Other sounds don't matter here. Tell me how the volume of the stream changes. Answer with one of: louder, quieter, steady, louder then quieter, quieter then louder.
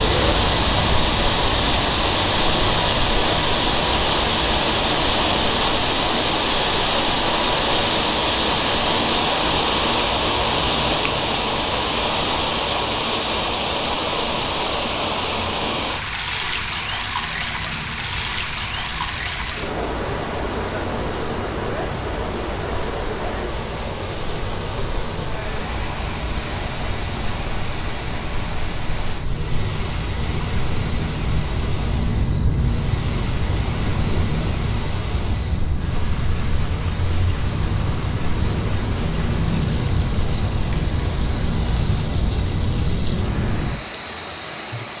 quieter.